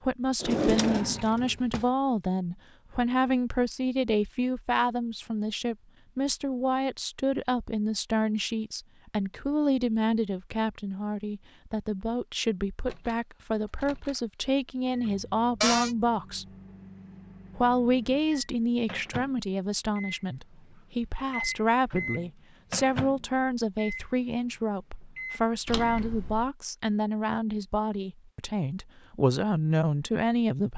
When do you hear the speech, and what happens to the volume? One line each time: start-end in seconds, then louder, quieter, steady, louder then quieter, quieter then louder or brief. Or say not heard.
0.0-16.4 steady
17.6-30.7 steady.